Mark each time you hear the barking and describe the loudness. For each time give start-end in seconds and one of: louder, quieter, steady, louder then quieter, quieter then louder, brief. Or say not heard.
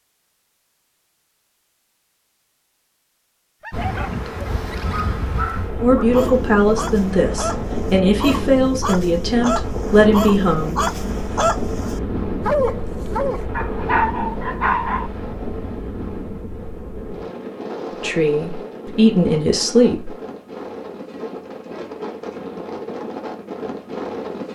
3.6-15.1 louder.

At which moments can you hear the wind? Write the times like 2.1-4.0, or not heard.
3.7-24.5.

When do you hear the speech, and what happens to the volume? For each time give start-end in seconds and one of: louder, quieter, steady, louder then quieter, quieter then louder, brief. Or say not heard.
5.8-11.4 steady
18.0-20.1 brief.